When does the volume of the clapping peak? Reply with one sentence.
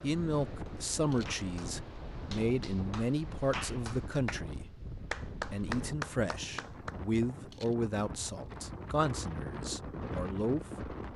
The volume of the clapping peaks at 6 seconds.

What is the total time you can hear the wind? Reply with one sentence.
The wind can be heard for 11 seconds in total.